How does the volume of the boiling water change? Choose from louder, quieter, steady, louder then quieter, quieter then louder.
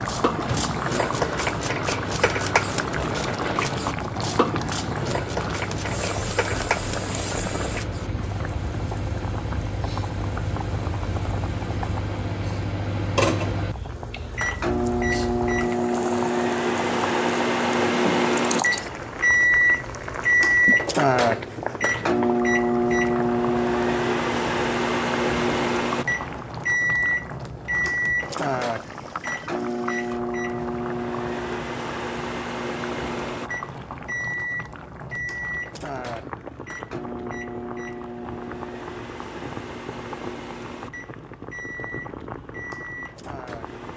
quieter.